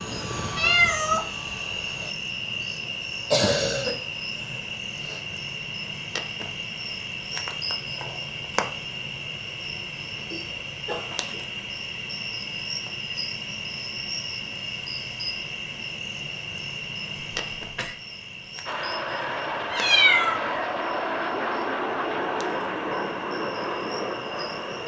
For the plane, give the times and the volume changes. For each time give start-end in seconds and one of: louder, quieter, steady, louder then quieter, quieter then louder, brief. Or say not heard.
0.0-2.1 brief
18.6-24.8 steady.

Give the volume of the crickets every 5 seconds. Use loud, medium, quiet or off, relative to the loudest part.
loud, loud, loud, loud, medium.